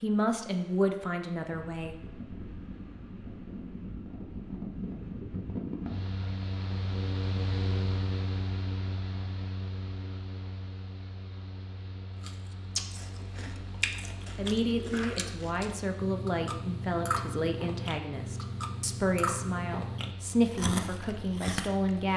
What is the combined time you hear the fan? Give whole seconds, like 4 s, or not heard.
22 s.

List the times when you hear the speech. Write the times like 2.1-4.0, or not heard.
0.0-1.9, 14.3-22.1.